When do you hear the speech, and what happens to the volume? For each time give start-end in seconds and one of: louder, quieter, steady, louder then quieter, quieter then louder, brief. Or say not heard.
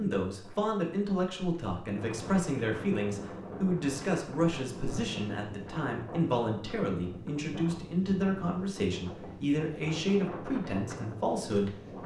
0.0-12.0 steady.